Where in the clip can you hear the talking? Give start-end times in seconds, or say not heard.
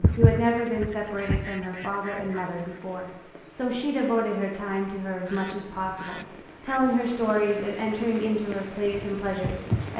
0.0-9.9.